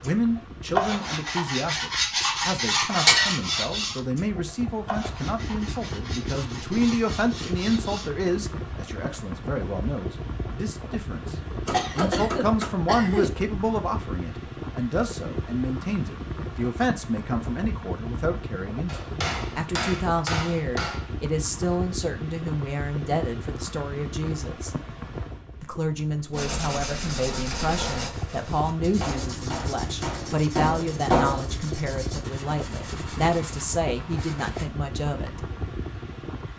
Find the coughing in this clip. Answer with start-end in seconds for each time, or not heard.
11.7-13.3.